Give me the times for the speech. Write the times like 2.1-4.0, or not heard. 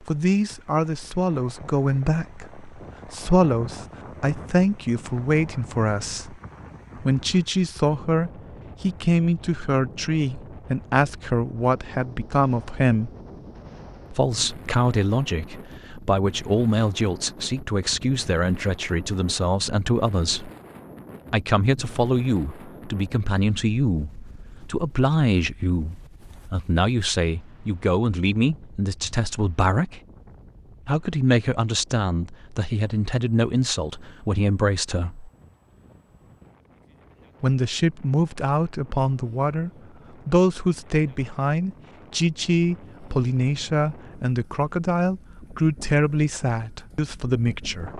0.0-13.1, 14.1-20.5, 21.3-30.0, 30.9-35.3, 37.4-47.9.